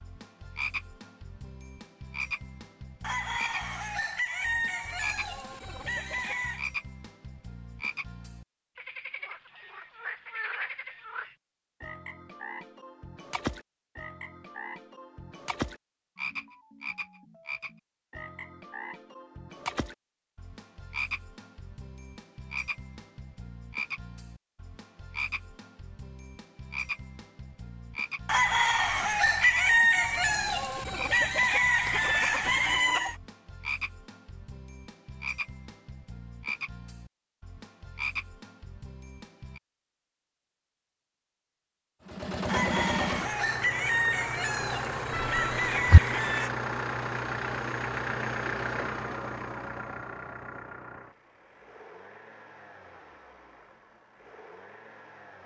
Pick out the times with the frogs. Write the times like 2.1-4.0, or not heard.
0.0-39.6.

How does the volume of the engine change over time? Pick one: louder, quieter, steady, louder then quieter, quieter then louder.
quieter.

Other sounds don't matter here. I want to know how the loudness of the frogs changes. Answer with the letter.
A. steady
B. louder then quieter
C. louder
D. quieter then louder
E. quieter
A.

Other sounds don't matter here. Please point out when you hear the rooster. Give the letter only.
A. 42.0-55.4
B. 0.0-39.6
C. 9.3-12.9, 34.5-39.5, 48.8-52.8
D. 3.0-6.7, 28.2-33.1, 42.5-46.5
D.